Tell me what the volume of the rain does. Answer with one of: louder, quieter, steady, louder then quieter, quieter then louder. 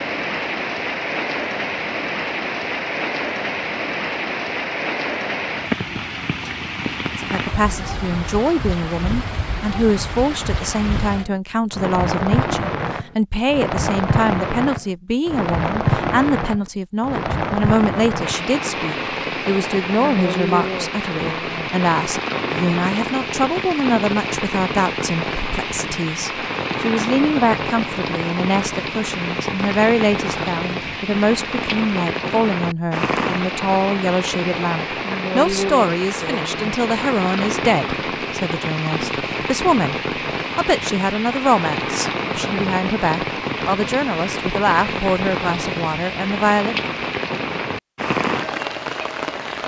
steady.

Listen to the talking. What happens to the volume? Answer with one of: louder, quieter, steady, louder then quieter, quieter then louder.
steady.